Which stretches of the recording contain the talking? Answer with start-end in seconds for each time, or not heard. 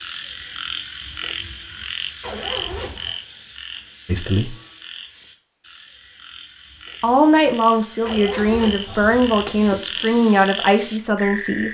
4.0-4.5, 7.0-11.6.